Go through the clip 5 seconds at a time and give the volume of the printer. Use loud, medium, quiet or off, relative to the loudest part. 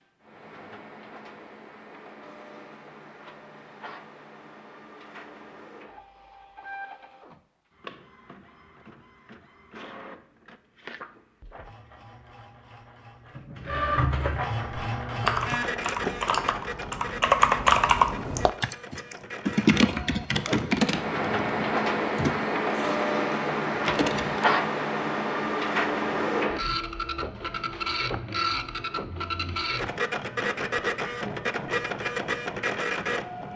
quiet, quiet, medium, medium, loud, loud, loud.